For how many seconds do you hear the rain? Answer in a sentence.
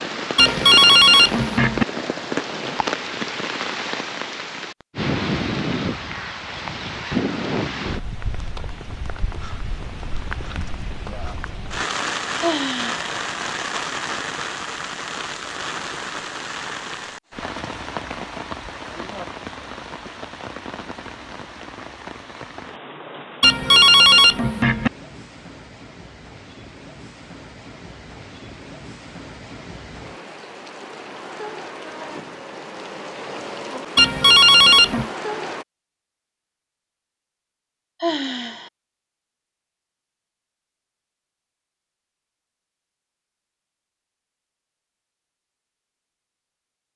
The rain can be heard for 36 seconds in total.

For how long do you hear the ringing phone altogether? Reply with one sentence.
You can hear the ringing phone for 4 seconds altogether.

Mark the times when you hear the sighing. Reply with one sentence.
The sighing can be heard from 12.4 to 13.1 s and from 38.0 to 38.7 s.